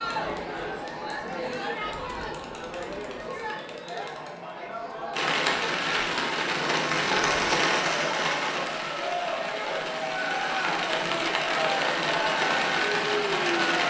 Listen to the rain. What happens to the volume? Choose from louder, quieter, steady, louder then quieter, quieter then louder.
quieter then louder.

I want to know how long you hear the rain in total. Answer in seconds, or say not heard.
9 s.